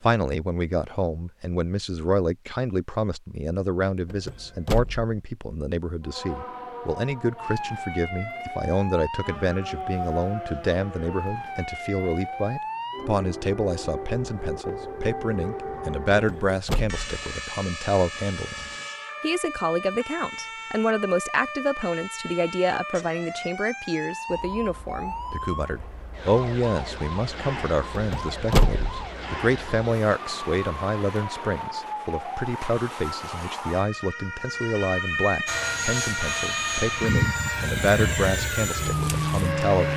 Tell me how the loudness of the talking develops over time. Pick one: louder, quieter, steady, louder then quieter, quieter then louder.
steady.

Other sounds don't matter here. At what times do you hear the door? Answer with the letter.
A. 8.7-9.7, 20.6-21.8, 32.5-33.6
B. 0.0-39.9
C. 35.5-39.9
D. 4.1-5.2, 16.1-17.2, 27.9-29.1
D.